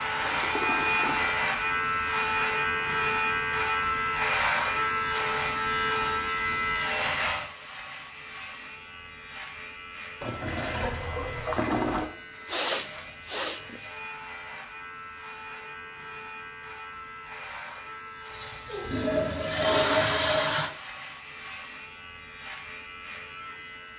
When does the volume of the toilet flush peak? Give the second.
20 s.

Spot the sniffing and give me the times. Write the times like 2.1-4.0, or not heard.
11.7-13.8.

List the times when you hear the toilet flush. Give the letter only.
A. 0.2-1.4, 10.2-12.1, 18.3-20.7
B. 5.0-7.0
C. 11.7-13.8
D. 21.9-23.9
A.